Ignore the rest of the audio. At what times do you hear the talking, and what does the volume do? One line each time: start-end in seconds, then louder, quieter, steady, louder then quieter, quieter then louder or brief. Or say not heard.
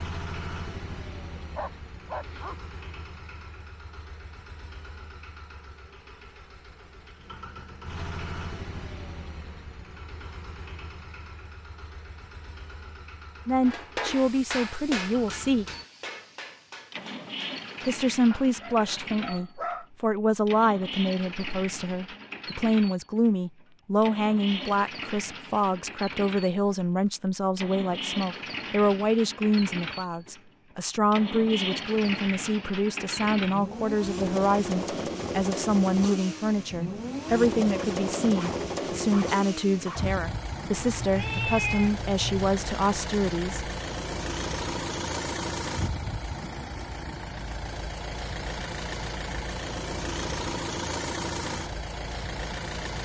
13.4-15.7 brief
17.9-43.6 steady.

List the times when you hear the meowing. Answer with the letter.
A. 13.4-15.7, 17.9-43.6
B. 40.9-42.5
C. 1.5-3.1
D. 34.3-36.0
B.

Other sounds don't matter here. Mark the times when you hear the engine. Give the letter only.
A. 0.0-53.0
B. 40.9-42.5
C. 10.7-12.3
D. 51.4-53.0
A.